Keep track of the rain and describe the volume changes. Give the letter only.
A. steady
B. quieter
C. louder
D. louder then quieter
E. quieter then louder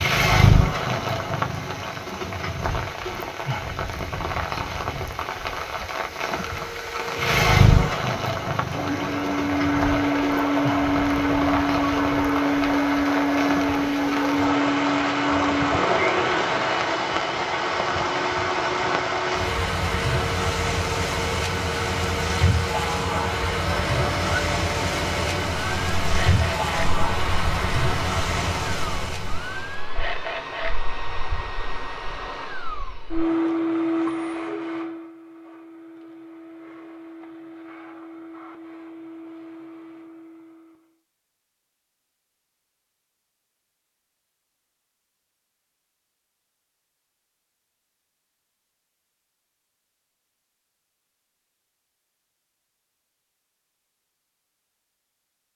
A.